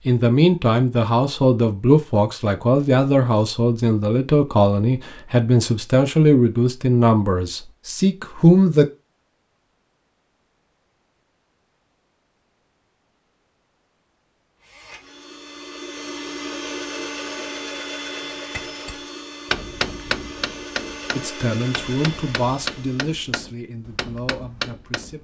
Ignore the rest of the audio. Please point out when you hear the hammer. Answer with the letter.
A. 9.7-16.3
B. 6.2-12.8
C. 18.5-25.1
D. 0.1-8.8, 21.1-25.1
C.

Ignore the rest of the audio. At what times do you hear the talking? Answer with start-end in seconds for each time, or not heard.
0.1-8.8, 21.1-25.1.